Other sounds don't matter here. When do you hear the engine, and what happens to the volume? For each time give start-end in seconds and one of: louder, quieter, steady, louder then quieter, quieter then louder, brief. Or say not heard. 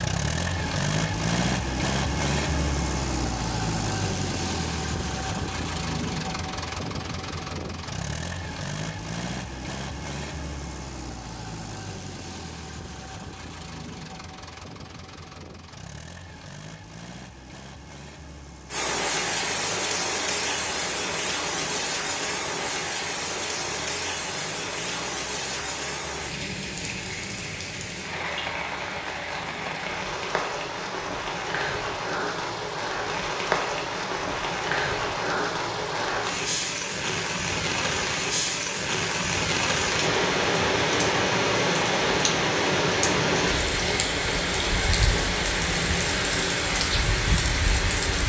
0.0-30.0 quieter.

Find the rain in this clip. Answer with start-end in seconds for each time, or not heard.
18.7-48.2.